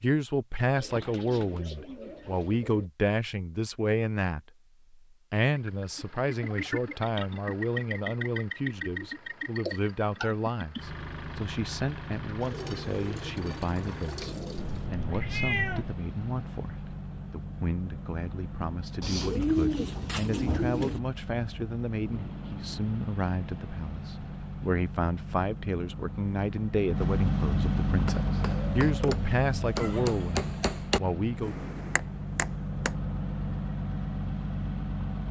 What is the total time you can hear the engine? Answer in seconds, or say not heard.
30 s.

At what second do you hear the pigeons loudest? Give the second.
20 s.